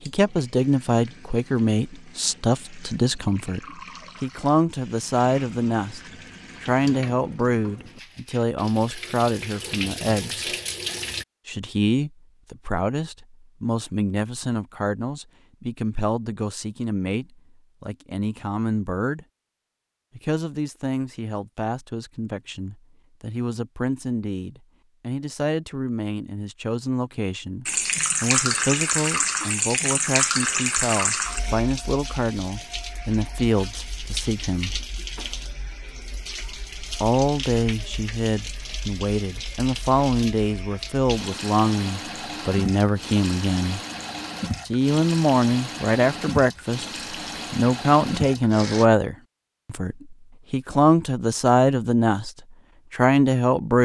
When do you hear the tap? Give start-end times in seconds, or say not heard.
0.0-11.2, 27.6-48.9.